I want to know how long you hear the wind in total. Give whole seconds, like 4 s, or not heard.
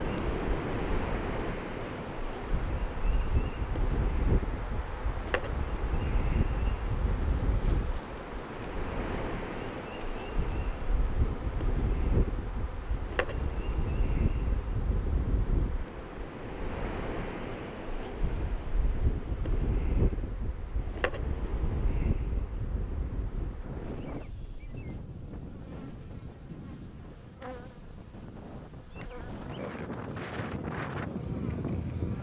32 s.